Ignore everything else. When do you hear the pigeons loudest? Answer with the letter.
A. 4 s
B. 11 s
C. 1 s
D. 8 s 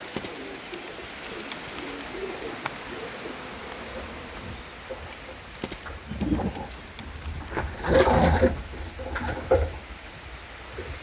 D.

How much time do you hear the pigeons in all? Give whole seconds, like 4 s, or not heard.
11 s.